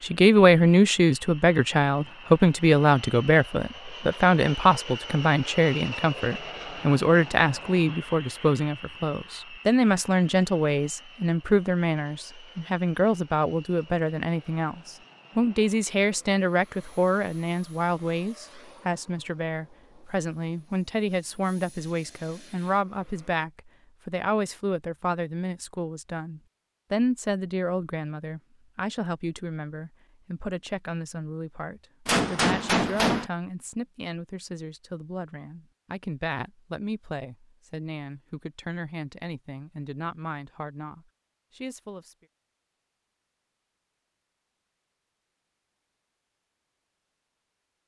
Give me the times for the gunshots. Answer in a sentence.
The gunshots can be heard from 32.0 to 33.3 s.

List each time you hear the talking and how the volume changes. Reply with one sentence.
You can hear the talking from 0.0 to 42.1 s, getting quieter.